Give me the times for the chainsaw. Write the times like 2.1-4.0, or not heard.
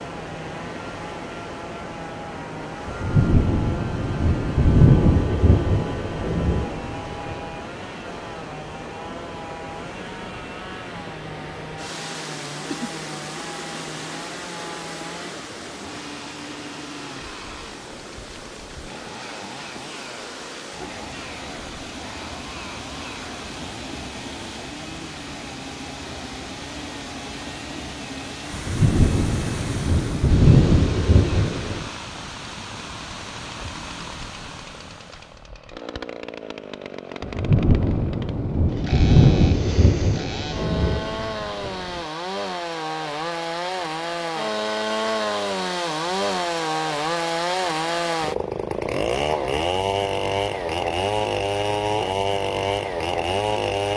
0.0-53.9.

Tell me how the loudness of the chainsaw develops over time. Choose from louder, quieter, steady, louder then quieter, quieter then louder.
louder.